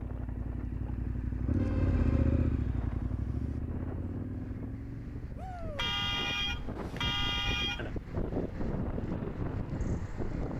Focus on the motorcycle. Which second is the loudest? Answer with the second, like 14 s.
2 s.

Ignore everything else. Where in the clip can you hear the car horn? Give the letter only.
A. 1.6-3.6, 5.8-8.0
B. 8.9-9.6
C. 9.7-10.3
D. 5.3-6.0
A.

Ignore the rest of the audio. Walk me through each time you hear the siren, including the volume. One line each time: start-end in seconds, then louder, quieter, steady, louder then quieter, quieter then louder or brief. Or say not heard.
not heard.